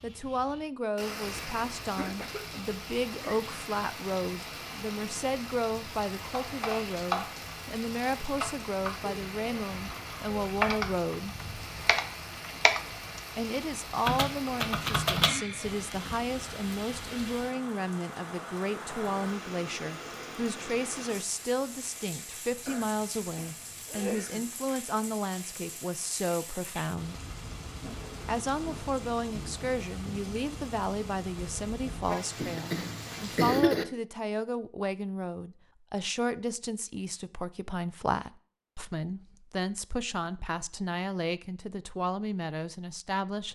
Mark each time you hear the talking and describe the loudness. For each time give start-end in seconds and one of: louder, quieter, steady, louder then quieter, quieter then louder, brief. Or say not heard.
0.0-11.3 steady
13.3-27.2 steady
28.2-43.5 steady.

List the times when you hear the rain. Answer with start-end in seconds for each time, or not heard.
0.0-33.6.